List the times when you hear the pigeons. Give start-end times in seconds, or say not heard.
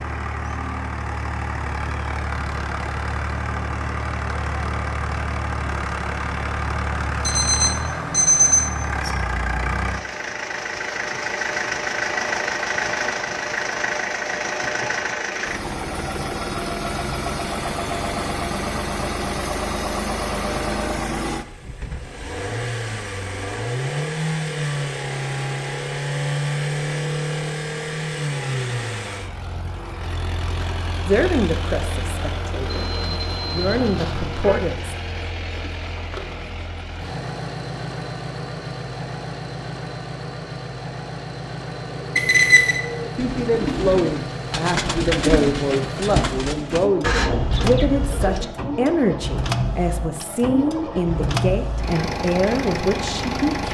41.7-48.5.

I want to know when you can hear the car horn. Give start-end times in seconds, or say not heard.
33.5-34.5.